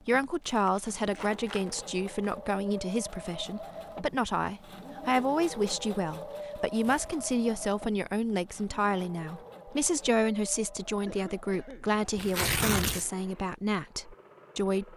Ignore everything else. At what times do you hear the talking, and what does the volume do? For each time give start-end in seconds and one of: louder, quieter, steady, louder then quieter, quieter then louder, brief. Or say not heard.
0.1-14.9 steady.